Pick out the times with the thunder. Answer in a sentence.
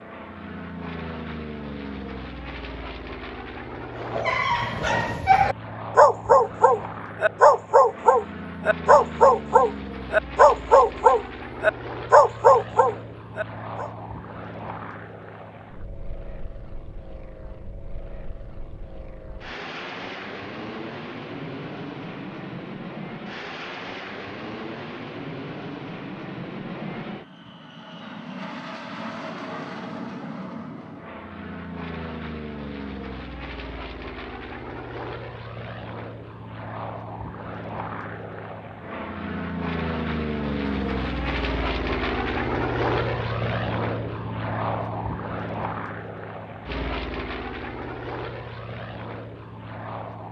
You can't hear the thunder here.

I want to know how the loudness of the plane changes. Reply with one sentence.
The loudness of the plane goes up.